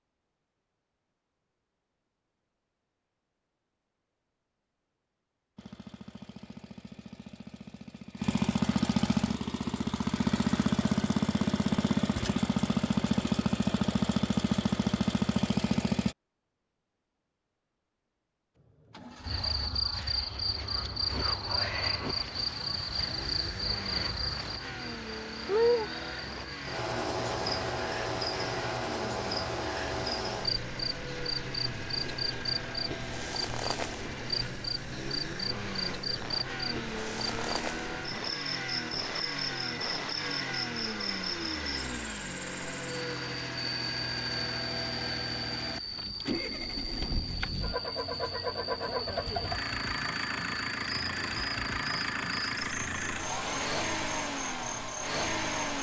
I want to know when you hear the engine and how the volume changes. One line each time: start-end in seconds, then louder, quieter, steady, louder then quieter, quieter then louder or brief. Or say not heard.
5.5-16.1 louder
18.6-55.7 louder.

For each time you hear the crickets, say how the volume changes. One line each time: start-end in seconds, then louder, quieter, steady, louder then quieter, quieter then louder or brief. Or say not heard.
19.2-55.7 quieter.